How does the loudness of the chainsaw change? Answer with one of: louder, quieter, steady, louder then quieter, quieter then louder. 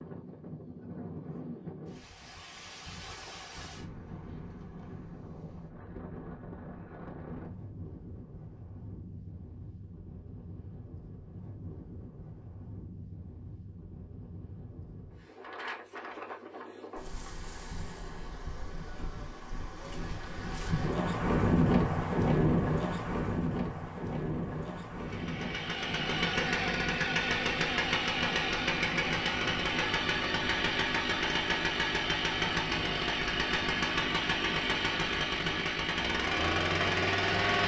steady.